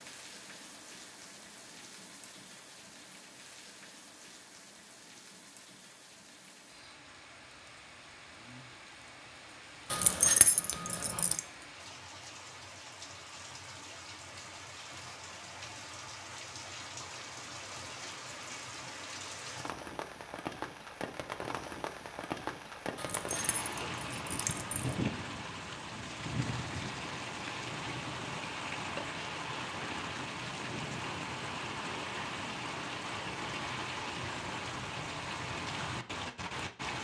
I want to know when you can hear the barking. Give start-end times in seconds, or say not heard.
not heard.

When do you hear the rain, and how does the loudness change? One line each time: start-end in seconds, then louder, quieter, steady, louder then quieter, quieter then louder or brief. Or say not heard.
0.0-36.9 louder.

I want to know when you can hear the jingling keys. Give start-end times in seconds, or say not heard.
9.9-11.4, 22.9-24.9.